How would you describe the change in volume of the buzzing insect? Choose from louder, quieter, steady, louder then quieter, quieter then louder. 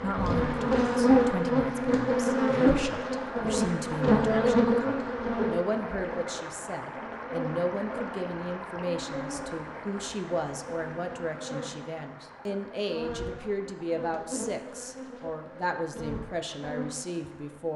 quieter.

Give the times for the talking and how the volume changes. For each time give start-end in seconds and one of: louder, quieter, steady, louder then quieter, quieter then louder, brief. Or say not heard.
0.0-17.7 steady.